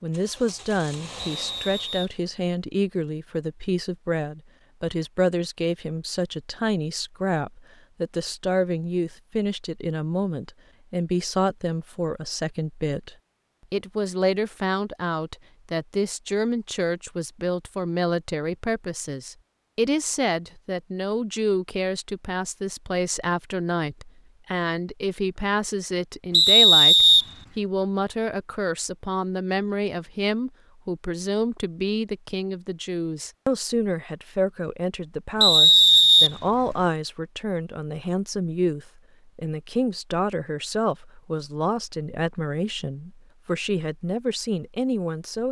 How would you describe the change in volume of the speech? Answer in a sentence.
The volume of the speech stays about the same.